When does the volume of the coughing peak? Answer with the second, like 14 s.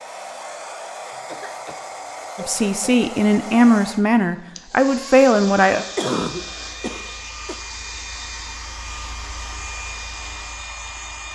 6 s.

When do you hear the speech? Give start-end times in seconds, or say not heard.
2.4-5.8.